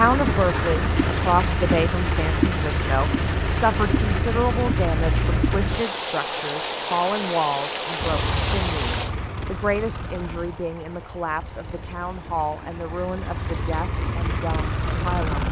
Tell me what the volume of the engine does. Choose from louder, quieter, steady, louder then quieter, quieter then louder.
quieter then louder.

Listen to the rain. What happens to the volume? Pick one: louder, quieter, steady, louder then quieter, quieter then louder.
quieter.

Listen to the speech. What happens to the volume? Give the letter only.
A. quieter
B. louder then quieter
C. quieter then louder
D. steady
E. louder
A.